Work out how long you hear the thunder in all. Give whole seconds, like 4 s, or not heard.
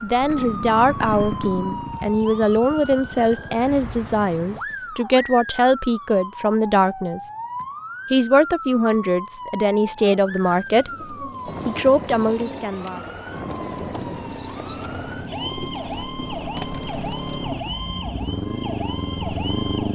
2 s.